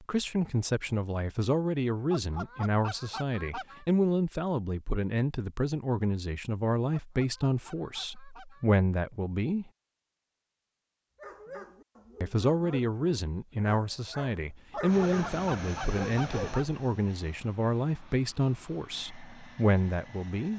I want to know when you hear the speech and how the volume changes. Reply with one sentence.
The speech can be heard from 0.0 to 9.7 s, at a steady volume; and from 12.2 to 20.5 s, at a steady volume.